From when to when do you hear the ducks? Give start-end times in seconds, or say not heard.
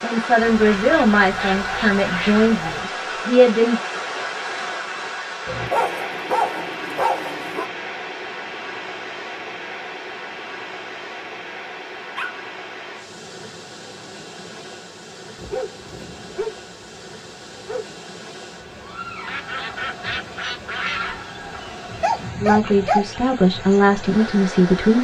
0.6-2.5, 19.2-21.1.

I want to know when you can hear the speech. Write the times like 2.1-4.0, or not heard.
0.0-3.8, 22.4-24.9.